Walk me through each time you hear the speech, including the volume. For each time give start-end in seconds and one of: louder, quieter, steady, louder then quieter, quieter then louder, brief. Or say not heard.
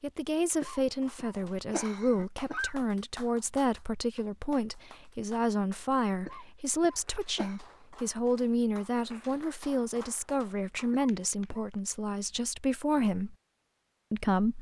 0.0-13.3 steady
14.1-14.5 brief.